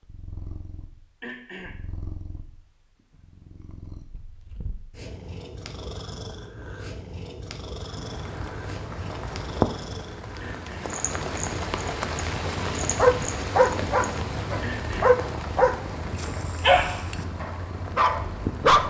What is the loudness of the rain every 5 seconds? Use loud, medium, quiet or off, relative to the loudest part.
off, loud, loud, medium.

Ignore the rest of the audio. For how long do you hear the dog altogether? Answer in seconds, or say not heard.
6 s.